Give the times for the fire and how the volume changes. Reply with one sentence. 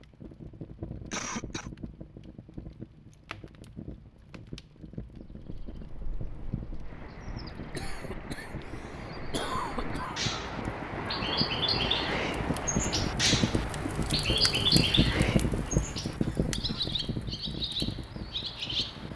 You can hear the fire from 0.0 to 19.1 s, getting louder.